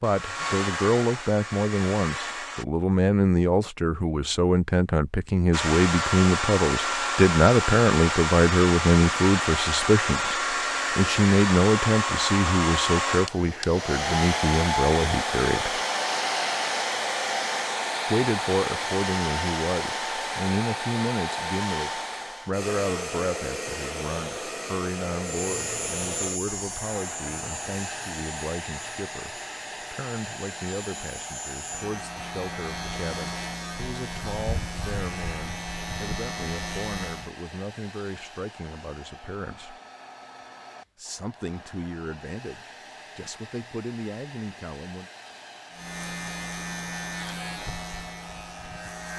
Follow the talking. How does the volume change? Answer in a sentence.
The volume of the talking goes down.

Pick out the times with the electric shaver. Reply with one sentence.
The electric shaver can be heard from 25.3 to 37.4 s and from 45.7 to 49.1 s.